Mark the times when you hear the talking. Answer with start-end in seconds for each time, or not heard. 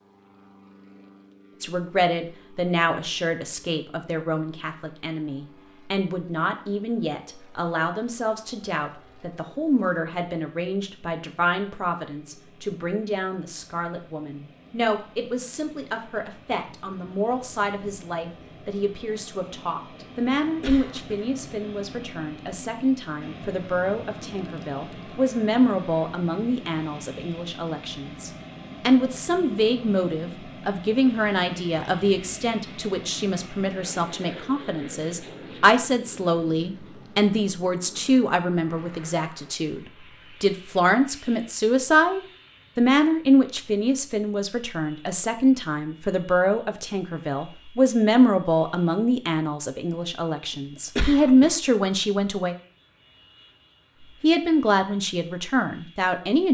1.6-39.8, 40.4-52.5, 54.2-56.4.